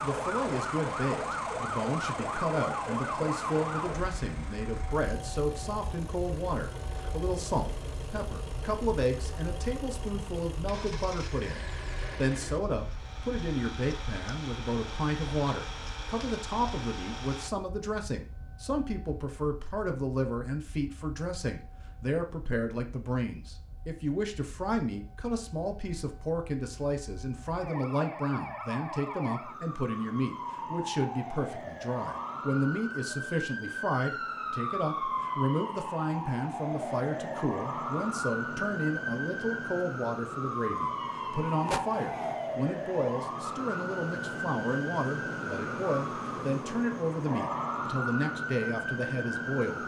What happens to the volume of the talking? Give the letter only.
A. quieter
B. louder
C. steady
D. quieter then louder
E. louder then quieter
C.